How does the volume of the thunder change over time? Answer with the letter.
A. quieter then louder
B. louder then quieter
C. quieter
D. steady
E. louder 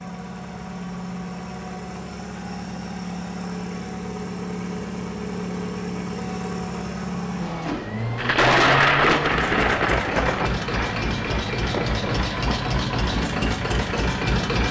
C.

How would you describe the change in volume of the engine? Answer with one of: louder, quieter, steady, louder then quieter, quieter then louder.
louder.